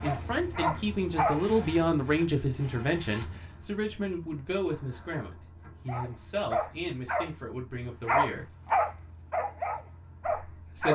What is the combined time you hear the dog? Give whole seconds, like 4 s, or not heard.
6 s.